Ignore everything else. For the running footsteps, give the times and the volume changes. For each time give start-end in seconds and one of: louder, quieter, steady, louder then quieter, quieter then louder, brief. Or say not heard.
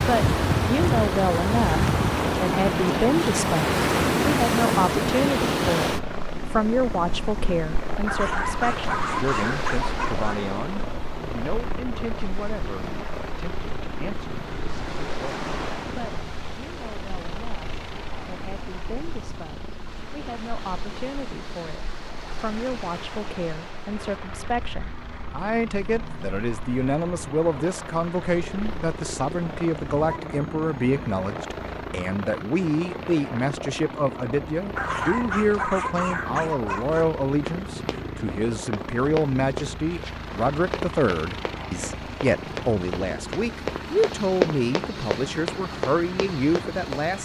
37.3-47.0 louder then quieter.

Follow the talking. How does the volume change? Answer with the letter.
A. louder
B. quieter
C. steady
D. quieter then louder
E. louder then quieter
D.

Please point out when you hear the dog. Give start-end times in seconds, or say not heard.
8.1-10.3, 34.8-37.1.